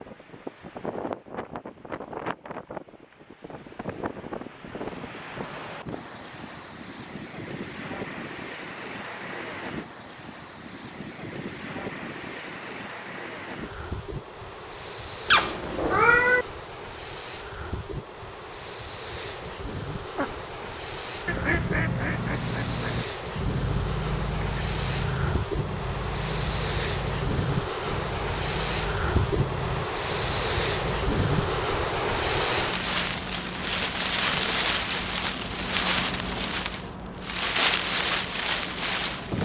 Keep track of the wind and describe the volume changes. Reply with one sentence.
The loudness of the wind goes up.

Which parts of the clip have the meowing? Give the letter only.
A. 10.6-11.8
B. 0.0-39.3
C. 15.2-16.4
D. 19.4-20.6
C.